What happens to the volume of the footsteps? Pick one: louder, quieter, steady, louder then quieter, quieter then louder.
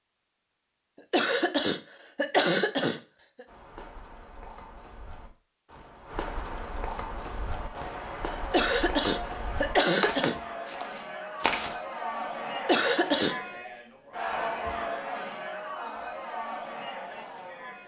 louder.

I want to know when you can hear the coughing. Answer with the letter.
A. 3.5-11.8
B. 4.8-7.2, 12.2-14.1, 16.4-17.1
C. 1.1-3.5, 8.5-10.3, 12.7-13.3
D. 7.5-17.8
C.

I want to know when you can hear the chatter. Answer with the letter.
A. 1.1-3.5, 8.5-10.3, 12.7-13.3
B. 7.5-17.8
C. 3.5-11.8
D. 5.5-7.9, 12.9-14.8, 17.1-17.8
B.